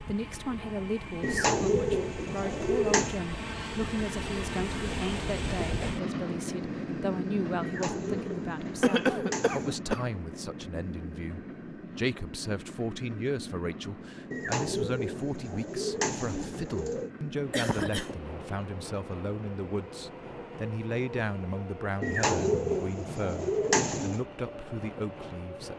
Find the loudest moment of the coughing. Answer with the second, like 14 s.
9 s.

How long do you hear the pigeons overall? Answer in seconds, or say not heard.
9 s.